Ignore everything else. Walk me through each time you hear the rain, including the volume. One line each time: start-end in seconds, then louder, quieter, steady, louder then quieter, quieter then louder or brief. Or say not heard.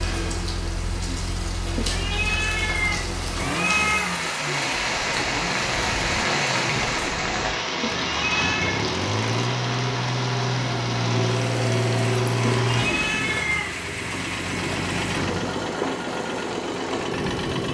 0.0-17.6 louder then quieter.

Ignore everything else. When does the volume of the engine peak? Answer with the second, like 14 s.
12 s.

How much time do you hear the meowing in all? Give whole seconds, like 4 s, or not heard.
5 s.